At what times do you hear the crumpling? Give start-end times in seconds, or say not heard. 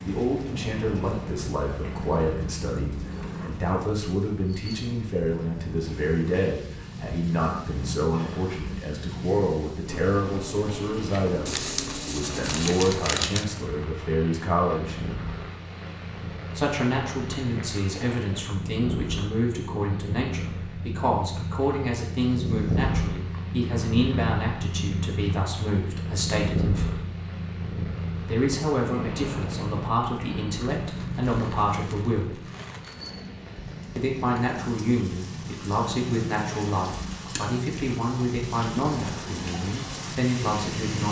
11.4-13.4, 30.8-33.1.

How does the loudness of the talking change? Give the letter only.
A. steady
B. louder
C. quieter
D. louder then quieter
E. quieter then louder
A.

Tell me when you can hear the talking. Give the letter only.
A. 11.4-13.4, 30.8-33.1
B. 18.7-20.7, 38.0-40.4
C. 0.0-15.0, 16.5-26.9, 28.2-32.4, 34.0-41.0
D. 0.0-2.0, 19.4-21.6
C.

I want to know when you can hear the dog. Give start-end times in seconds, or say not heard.
not heard.